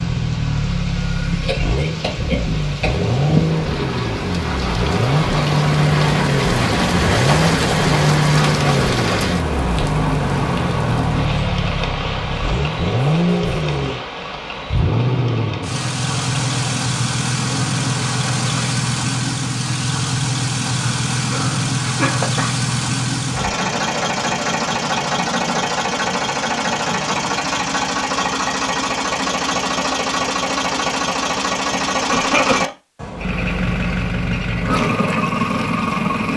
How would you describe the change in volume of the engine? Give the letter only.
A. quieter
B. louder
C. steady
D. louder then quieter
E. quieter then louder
C.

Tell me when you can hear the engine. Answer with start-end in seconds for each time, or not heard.
0.0-36.3.